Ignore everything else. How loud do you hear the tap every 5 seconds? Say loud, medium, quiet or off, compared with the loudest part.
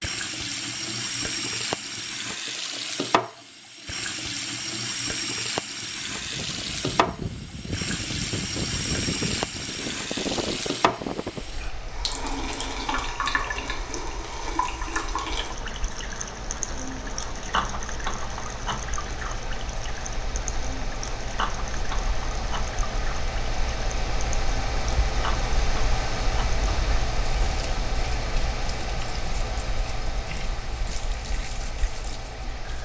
loud, loud, loud, loud, medium, medium, quiet.